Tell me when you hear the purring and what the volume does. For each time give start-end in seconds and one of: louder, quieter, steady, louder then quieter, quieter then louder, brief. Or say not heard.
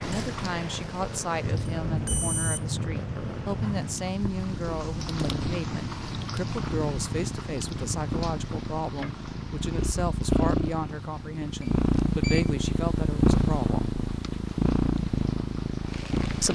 0.0-16.4 louder.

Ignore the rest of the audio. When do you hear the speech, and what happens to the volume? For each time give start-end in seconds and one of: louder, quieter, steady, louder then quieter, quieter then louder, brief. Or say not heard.
0.0-13.9 steady.